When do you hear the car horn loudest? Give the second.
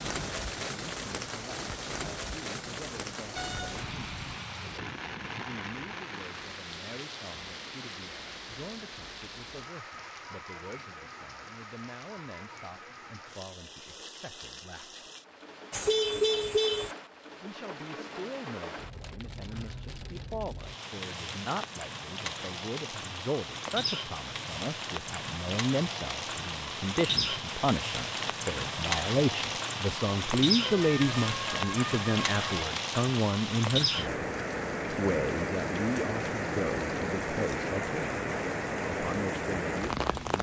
16 s.